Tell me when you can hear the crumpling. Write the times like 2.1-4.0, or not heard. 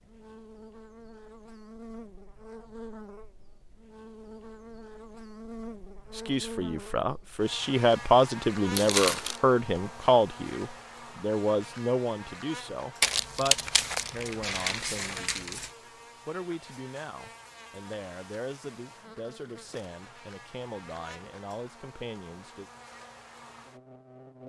8.8-9.4, 13.0-15.7.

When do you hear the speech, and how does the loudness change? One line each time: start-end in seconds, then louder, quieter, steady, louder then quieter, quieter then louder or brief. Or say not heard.
6.1-22.7 quieter.